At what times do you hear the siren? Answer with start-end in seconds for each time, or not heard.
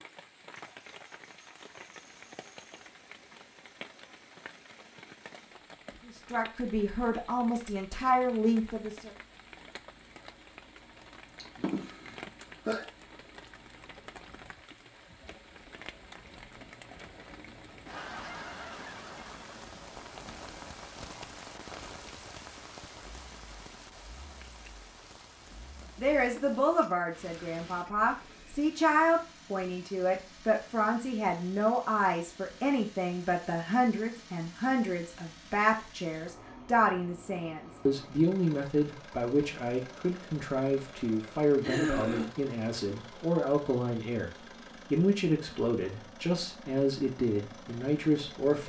not heard.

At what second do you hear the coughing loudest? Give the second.
42 s.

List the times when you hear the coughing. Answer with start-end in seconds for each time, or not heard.
11.3-12.8, 41.6-42.3.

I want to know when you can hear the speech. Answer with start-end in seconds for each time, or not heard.
6.0-9.1, 26.0-48.6.